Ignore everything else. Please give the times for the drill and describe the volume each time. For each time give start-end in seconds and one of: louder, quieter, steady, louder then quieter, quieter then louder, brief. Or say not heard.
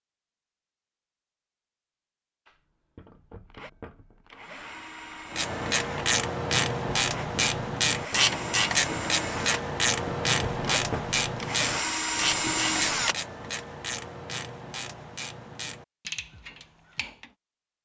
2.5-13.2 louder.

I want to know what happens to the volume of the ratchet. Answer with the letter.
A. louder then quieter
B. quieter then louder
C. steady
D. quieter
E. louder
D.